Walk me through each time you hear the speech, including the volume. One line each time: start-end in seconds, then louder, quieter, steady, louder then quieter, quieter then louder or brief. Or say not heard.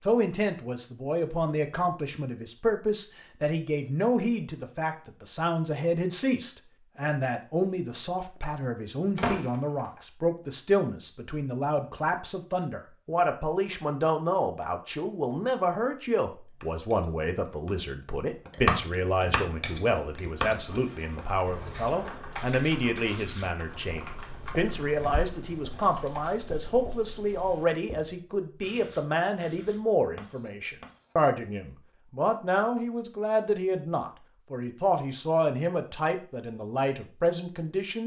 0.0-38.0 steady.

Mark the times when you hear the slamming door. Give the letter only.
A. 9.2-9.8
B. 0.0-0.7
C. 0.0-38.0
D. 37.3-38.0
A.